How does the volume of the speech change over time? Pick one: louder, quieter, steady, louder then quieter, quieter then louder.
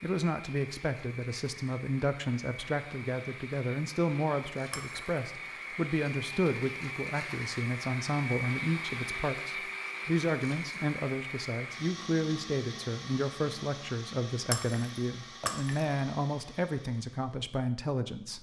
steady.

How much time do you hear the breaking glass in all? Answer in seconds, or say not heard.
2 s.